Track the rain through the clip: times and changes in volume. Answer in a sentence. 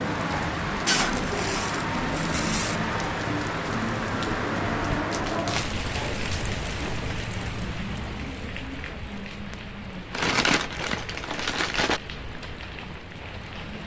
You can hear the rain from 0.0 to 13.8 s, getting quieter.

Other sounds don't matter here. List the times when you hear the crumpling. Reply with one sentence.
The crumpling can be heard from 0.8 to 2.8 s, from 5.1 to 5.8 s and from 10.1 to 12.0 s.